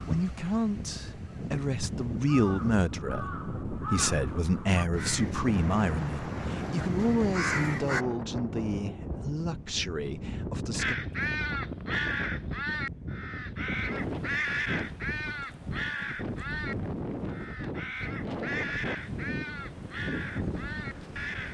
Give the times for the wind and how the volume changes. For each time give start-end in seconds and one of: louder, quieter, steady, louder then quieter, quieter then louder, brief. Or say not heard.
0.0-21.4 steady.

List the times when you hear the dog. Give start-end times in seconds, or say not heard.
not heard.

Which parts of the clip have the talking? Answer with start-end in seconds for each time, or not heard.
0.0-10.9.